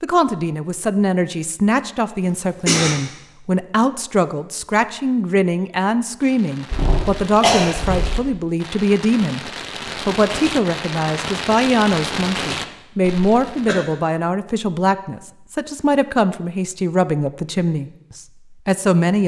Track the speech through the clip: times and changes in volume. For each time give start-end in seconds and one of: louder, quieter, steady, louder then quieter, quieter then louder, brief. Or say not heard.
0.0-19.2 steady.